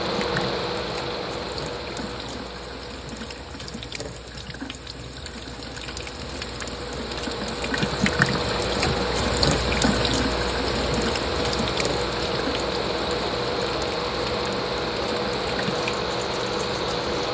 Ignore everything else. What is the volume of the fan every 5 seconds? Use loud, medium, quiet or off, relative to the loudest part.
medium, loud, loud, loud.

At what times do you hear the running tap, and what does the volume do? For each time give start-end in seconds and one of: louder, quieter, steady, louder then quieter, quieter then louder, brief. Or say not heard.
0.0-17.2 louder then quieter.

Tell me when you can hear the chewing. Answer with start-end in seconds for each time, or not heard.
not heard.